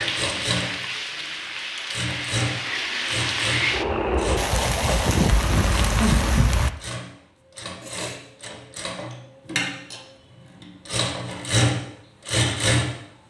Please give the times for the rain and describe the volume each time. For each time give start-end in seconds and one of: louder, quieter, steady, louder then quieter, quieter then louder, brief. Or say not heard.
0.0-6.7 louder.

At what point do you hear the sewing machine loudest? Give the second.
12 s.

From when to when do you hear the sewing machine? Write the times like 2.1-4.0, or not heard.
0.0-0.8, 1.8-12.9.